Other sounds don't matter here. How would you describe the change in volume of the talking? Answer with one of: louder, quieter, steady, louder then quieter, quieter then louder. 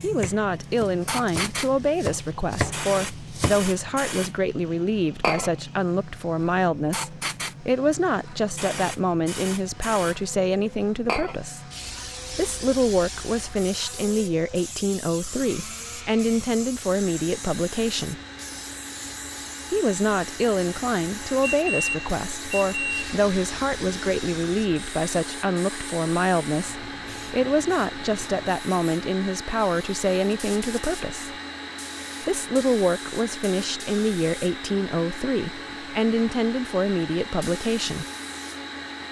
steady.